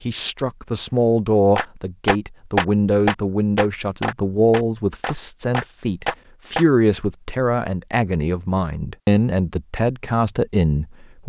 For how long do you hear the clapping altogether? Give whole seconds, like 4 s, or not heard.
5 s.